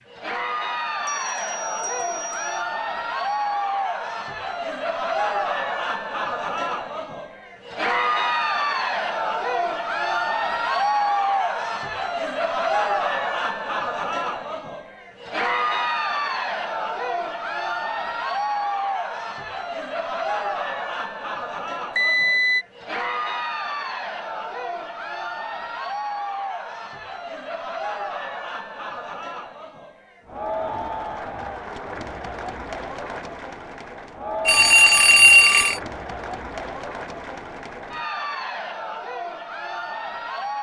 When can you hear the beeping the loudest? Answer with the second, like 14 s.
35 s.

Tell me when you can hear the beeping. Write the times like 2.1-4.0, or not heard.
1.1-2.5, 21.9-22.6, 34.5-35.8.